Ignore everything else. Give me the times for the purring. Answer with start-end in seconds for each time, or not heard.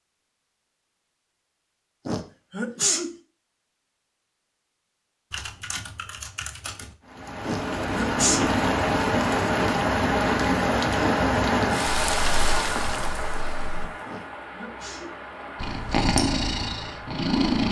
15.6-17.6.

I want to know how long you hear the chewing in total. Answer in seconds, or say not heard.
not heard.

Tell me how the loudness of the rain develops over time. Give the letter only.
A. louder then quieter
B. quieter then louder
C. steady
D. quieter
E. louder
D.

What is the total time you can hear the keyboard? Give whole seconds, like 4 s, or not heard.
4 s.